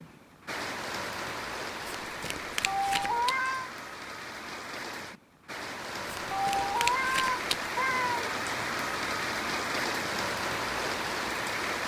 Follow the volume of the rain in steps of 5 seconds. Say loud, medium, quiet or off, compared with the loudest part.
medium, loud, loud.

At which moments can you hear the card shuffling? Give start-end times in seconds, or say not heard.
2.0-3.4, 6.0-7.7.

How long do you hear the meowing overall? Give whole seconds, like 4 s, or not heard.
3 s.